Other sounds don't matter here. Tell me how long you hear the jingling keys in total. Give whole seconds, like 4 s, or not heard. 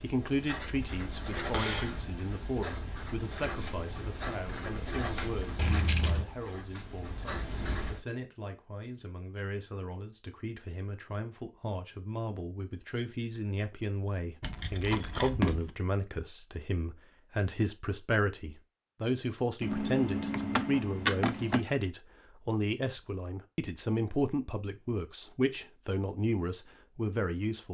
4 s.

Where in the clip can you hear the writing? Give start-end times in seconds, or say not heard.
0.0-8.0.